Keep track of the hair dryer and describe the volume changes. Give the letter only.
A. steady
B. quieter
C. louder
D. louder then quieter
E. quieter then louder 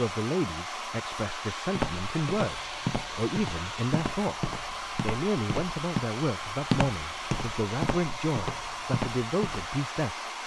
A.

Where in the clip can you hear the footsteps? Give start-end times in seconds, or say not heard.
1.8-9.7.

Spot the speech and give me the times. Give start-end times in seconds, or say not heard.
0.0-10.2.